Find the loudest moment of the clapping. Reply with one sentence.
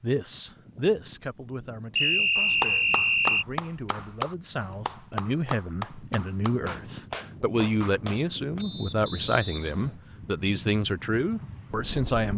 The loudest moment of the clapping is at 3 seconds.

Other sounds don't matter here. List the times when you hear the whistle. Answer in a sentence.
The whistle can be heard from 1.9 to 3.5 s and from 8.6 to 9.9 s.